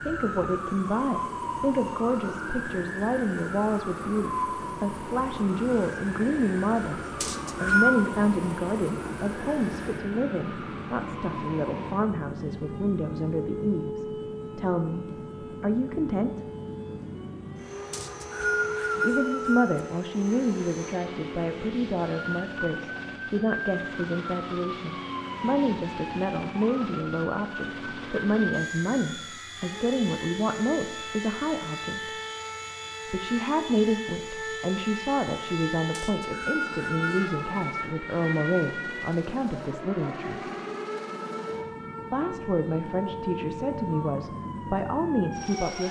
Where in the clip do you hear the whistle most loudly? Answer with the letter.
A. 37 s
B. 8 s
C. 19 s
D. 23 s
B.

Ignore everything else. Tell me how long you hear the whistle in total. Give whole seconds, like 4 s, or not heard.
4 s.